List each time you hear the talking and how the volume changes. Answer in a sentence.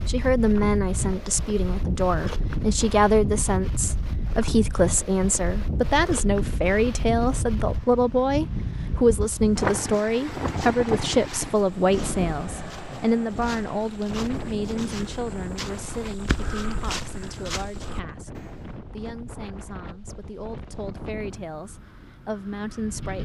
The talking can be heard from 0.1 to 23.2 s, getting quieter.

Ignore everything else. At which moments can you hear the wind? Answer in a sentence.
You can hear the wind from 0.0 to 23.2 s.